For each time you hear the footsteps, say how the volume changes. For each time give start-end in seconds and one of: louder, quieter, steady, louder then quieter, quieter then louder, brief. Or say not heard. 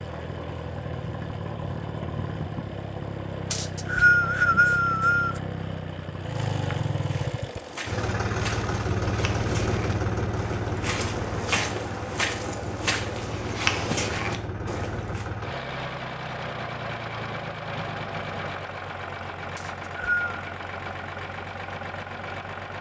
7.0-15.2 louder.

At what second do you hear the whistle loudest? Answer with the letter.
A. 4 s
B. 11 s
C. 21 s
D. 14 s
A.